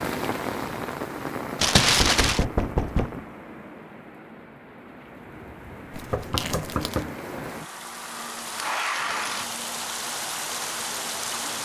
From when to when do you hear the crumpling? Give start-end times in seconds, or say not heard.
1.6-2.5, 5.9-7.0.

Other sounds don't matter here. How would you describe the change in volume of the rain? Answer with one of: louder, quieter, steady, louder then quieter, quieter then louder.
quieter then louder.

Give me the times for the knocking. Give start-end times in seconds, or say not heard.
2.0-3.2, 6.1-7.2.